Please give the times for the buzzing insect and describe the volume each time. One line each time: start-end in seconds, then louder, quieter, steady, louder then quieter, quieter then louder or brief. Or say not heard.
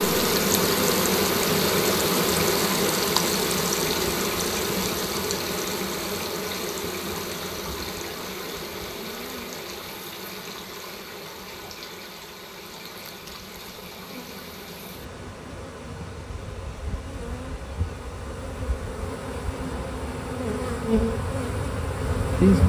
0.0-22.6 quieter then louder.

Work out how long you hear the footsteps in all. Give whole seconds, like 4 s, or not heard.
not heard.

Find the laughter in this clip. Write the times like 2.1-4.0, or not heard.
not heard.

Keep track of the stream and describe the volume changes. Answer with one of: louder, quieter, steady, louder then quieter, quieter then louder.
quieter.